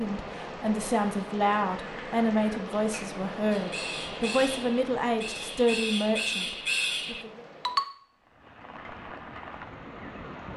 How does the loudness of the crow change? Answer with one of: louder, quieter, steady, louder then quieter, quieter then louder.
louder.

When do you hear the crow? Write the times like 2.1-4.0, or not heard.
1.8-7.8.